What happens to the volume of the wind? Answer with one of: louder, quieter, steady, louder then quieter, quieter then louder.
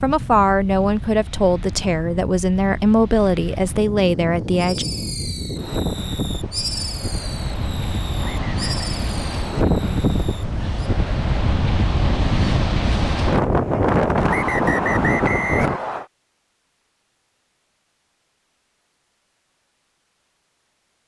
louder.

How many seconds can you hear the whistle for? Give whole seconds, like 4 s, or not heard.
2 s.